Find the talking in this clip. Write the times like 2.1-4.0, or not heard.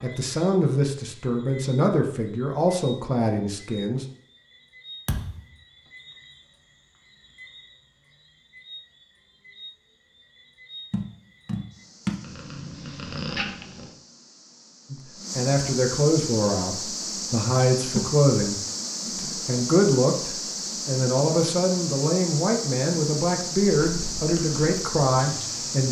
0.0-4.0, 14.9-25.8.